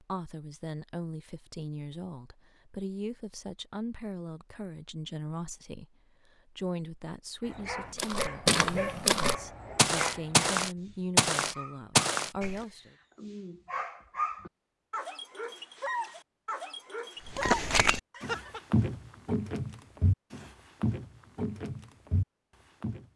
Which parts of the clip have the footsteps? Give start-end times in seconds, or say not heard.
8.0-12.6, 17.2-23.1.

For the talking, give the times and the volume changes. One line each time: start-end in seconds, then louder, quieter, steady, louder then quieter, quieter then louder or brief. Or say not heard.
0.0-12.9 steady.